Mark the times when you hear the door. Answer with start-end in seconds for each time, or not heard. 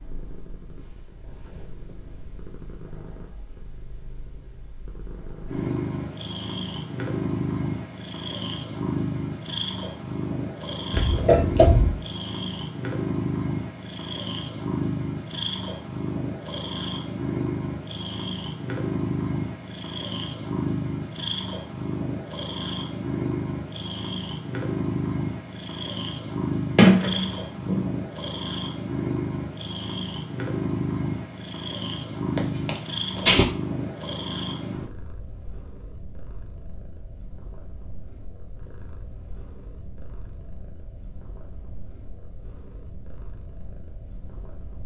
10.9-12.0, 26.8-28.0, 32.4-33.5.